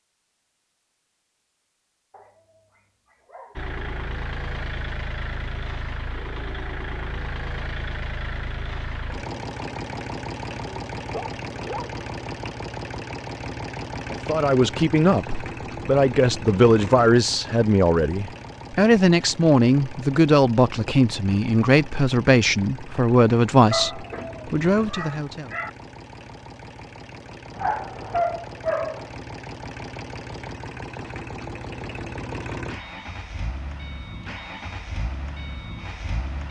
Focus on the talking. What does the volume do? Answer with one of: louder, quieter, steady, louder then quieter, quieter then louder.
steady.